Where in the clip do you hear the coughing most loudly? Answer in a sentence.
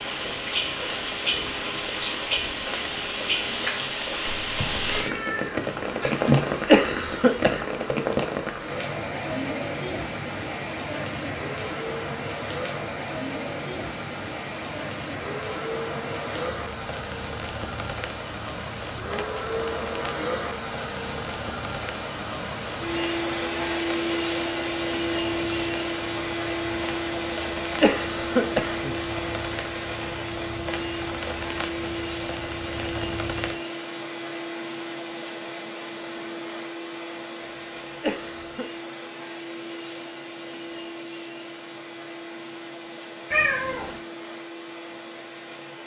The volume of the coughing peaks at 7 seconds.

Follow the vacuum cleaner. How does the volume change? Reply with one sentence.
The loudness of the vacuum cleaner goes up, then down.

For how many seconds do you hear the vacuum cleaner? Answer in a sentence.
You can hear the vacuum cleaner for 46 seconds altogether.